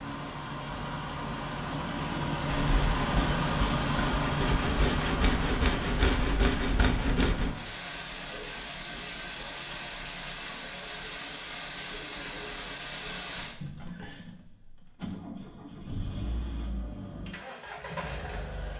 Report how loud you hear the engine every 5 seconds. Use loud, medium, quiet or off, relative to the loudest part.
loud, medium, medium, medium.